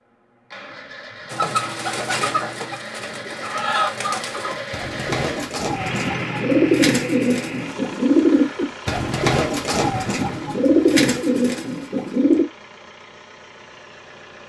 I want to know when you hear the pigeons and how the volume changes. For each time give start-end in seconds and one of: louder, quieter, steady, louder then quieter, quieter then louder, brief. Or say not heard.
1.3-12.4 louder.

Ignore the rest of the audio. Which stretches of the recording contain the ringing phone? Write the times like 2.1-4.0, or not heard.
not heard.